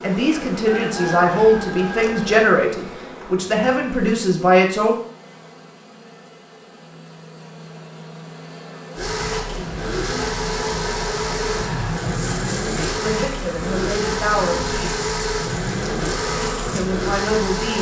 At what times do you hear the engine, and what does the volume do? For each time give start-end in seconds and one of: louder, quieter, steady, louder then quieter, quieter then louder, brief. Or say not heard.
8.9-17.7 steady.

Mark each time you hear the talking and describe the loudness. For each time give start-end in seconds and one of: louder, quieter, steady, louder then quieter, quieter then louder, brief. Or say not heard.
0.0-5.0 steady
13.0-15.0 brief
16.7-17.7 brief.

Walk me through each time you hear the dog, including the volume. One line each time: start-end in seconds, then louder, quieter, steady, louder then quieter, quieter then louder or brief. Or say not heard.
not heard.